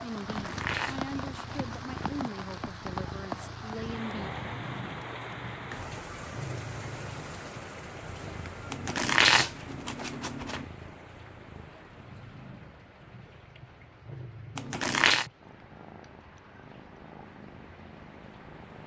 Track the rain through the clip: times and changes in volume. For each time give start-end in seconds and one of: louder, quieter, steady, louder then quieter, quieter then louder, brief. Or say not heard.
0.0-18.8 quieter.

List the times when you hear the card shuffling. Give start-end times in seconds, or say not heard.
0.2-2.1, 8.7-10.7, 14.6-15.2.